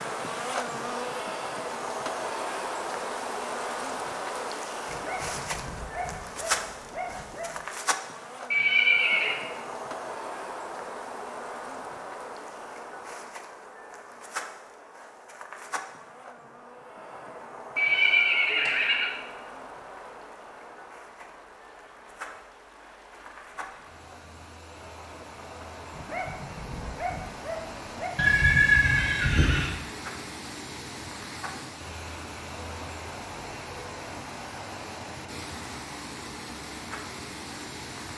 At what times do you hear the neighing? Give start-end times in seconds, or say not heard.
8.5-9.3, 17.8-19.1, 28.1-29.8.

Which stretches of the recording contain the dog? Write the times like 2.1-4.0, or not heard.
4.8-7.7, 25.9-28.2.